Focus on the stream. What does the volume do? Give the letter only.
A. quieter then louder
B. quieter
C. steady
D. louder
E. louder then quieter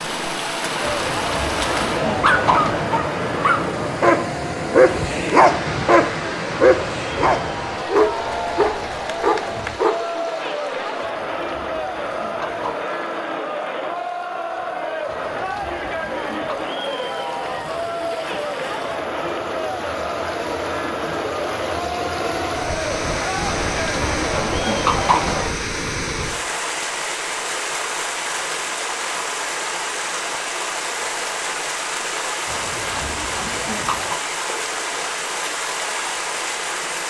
A.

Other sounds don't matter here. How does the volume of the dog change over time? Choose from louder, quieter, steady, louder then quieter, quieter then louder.
louder then quieter.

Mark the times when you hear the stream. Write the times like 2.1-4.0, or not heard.
0.0-37.0.